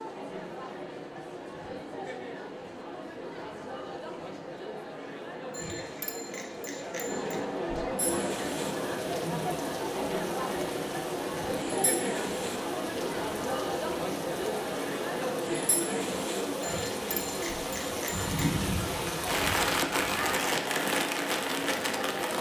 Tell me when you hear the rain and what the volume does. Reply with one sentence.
The rain can be heard from 8.0 to 22.3 s, getting louder.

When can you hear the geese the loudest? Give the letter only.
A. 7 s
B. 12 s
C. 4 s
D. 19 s
D.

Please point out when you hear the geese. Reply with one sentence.
The geese can be heard from 18.1 to 20.4 s.